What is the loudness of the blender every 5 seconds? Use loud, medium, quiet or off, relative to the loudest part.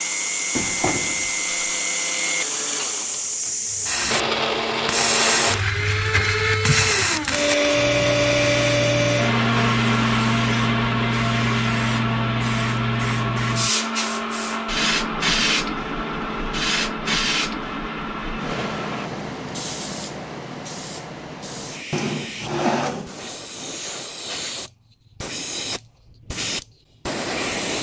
medium, loud, loud, medium, off, off.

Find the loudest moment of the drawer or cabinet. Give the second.
23 s.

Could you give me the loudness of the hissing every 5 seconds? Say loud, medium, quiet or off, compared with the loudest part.
loud, loud, loud, loud, medium, loud.